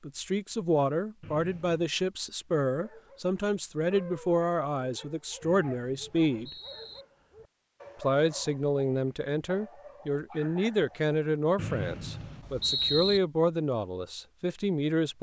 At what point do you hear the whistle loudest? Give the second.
13 s.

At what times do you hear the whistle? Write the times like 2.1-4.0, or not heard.
1.2-1.8, 5.4-7.0, 11.6-13.2.